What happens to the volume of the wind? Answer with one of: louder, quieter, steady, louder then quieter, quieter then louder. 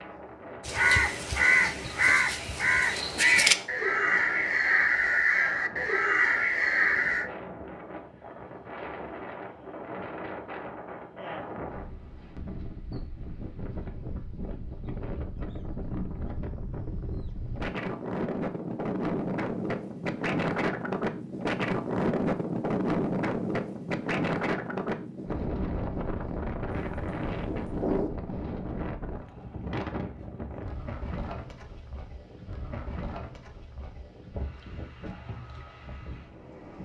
louder then quieter.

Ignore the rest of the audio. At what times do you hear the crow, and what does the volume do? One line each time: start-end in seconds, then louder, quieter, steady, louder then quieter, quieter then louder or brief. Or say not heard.
0.7-7.3 steady
26.7-28.1 brief.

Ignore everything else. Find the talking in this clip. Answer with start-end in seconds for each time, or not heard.
not heard.